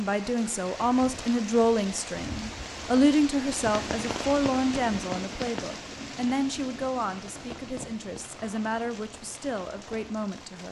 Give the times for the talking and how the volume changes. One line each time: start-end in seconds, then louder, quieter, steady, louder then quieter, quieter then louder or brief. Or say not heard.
0.0-10.6 quieter.